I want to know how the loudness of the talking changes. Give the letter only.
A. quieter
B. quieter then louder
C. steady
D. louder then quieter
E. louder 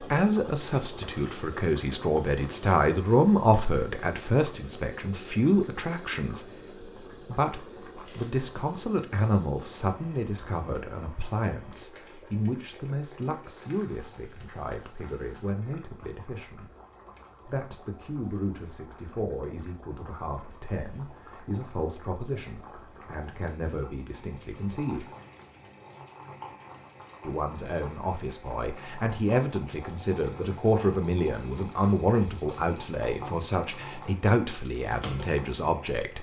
B.